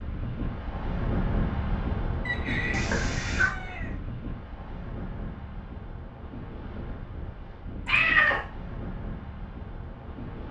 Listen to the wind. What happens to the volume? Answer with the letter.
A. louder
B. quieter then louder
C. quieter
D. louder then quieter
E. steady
C.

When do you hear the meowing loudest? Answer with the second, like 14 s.
8 s.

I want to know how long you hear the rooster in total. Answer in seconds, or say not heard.
2 s.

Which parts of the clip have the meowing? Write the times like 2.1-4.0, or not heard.
2.7-3.5, 7.8-8.4.